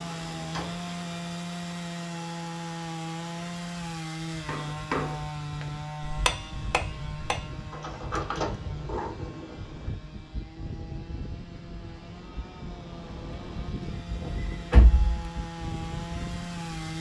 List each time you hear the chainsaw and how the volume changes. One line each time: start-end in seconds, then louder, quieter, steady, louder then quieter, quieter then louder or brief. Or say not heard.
0.0-16.9 quieter then louder.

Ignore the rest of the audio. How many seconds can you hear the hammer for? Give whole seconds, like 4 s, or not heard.
4 s.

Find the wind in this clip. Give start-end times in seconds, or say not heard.
0.0-16.9.